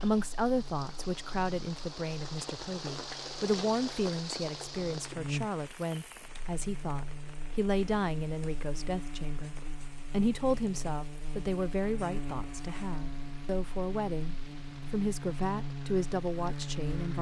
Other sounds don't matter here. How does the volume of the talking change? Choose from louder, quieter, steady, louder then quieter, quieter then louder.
steady.